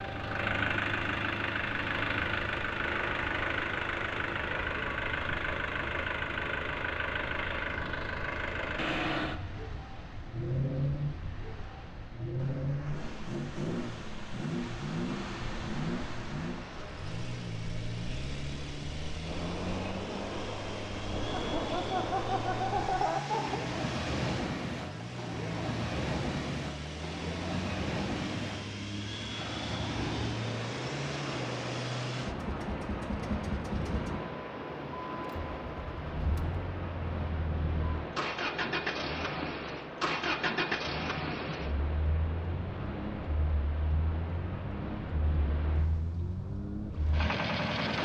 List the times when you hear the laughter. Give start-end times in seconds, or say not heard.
21.4-23.6.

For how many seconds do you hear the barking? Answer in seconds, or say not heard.
not heard.